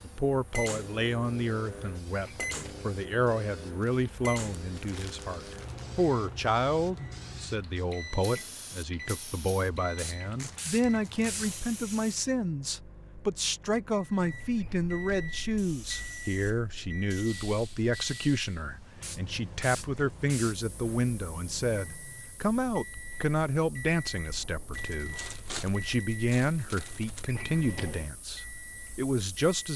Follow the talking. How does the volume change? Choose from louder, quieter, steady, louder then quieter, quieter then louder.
steady.